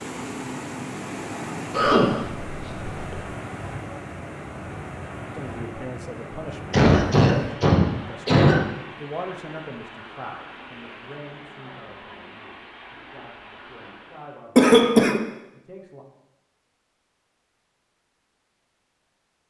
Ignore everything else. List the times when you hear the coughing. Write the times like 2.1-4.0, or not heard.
1.7-3.2, 6.7-8.6, 14.6-15.2.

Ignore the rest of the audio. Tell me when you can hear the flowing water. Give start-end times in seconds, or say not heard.
0.0-14.4.